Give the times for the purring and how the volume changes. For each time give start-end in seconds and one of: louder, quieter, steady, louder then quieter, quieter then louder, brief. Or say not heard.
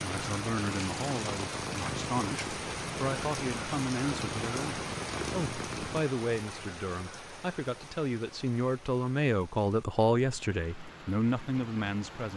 0.0-6.0 steady.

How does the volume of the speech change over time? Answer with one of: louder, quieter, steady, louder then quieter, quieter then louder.
louder.